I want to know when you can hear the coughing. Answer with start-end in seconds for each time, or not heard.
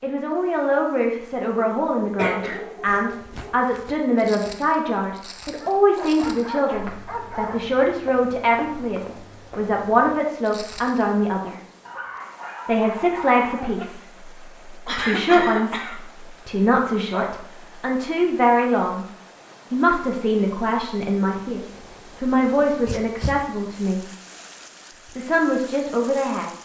2.1-3.5, 14.8-16.0.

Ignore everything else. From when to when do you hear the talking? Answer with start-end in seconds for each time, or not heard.
0.0-11.6, 12.7-19.1, 19.7-24.0, 25.1-26.6.